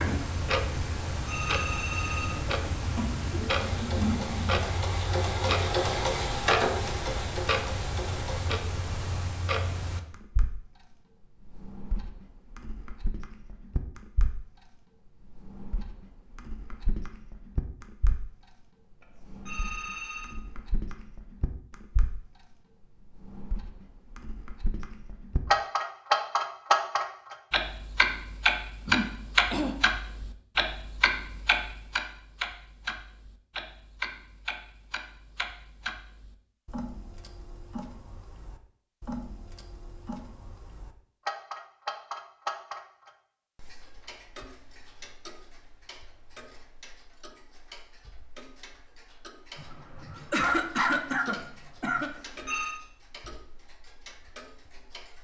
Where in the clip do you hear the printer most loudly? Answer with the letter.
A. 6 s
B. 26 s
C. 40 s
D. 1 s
A.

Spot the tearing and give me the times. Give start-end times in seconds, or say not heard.
not heard.